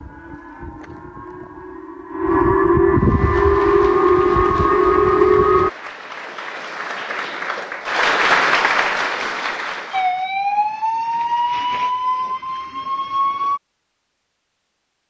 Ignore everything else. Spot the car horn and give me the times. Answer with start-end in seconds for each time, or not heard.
not heard.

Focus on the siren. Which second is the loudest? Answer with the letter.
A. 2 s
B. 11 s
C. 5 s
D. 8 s
C.